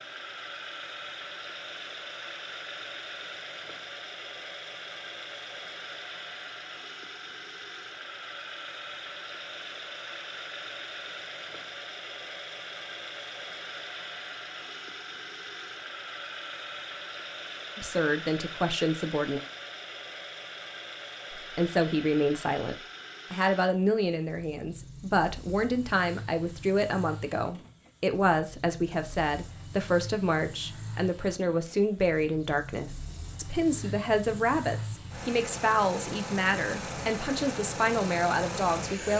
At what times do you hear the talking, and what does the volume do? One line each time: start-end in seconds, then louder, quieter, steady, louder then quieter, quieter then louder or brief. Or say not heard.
17.8-19.4 brief
21.4-39.1 steady.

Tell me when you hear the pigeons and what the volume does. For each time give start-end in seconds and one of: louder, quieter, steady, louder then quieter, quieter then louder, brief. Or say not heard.
not heard.